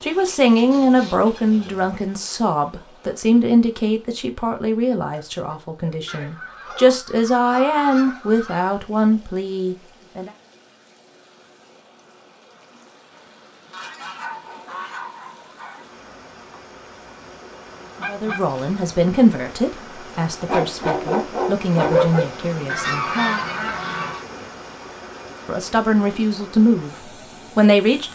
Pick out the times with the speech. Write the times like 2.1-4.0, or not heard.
0.0-10.3, 18.1-23.1, 25.4-28.1.